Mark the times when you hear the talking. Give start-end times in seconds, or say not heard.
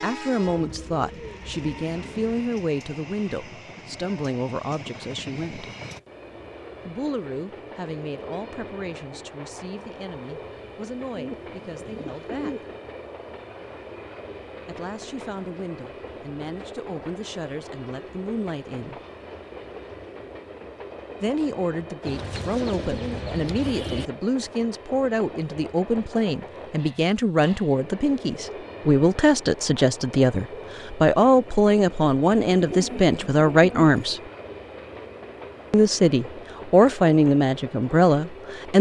0.0-5.7, 6.8-12.7, 14.7-19.0, 21.2-34.2, 35.7-38.7.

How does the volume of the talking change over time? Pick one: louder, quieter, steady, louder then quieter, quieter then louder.
quieter then louder.